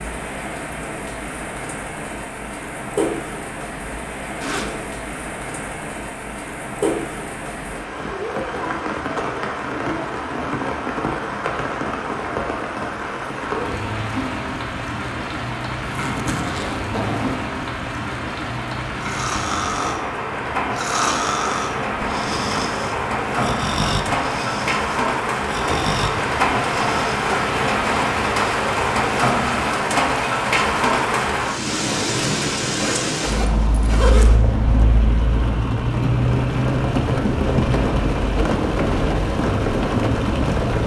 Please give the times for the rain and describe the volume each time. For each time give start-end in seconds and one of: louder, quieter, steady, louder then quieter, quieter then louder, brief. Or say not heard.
0.0-40.8 louder.